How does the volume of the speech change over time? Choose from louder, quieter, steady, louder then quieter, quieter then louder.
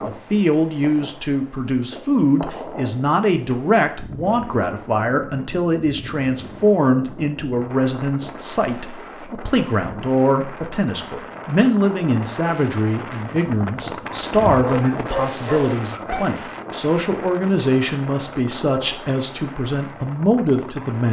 steady.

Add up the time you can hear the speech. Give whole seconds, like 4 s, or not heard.
21 s.